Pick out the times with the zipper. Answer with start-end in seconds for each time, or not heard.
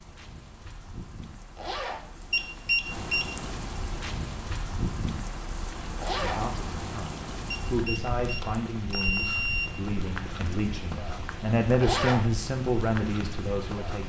1.6-2.0, 6.0-6.5, 11.8-12.3.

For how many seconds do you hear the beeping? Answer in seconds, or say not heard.
3 s.